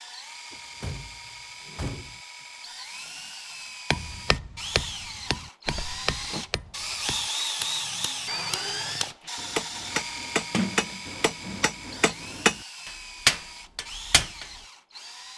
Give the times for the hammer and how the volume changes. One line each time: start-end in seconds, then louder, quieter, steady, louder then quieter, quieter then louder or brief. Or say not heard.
3.9-14.4 quieter then louder.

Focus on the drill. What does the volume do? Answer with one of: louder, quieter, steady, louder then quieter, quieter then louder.
louder then quieter.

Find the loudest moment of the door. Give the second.
11 s.